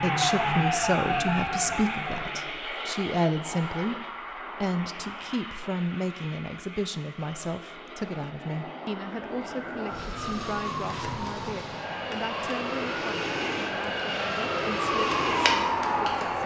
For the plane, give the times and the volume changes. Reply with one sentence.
You can hear the plane from 0.0 to 16.4 s, getting quieter then louder.